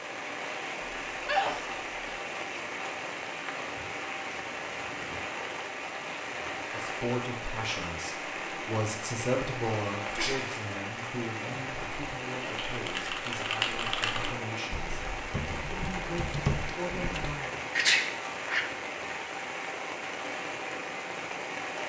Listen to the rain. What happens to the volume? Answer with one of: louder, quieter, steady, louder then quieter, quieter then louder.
steady.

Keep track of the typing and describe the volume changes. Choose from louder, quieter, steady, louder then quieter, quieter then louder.
quieter then louder.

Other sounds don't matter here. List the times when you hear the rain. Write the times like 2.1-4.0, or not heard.
0.0-21.8.